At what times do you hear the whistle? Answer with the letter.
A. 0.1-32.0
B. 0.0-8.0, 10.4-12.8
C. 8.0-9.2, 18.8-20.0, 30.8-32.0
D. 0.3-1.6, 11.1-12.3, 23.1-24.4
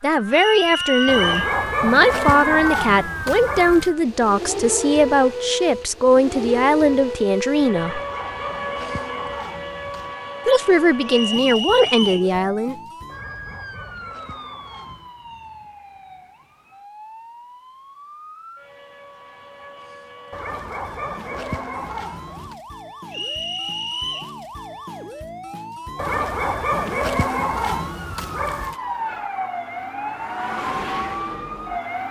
D.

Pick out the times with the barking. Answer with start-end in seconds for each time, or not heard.
1.1-4.0, 7.8-10.2, 13.1-15.2, 20.3-22.6, 25.9-28.8.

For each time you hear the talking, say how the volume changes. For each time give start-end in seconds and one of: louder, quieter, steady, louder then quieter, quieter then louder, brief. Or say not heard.
0.0-8.0 steady
10.4-12.8 brief.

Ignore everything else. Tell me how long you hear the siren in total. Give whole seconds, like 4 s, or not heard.
32 s.